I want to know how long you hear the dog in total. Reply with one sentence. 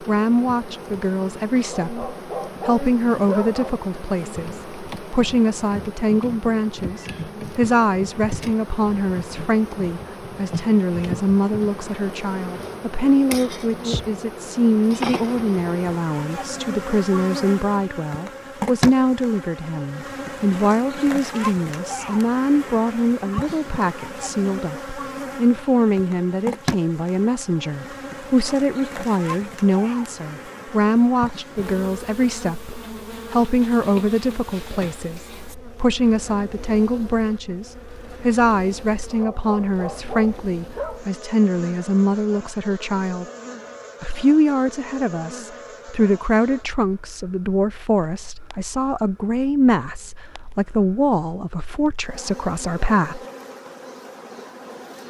The dog can be heard for 4 seconds in total.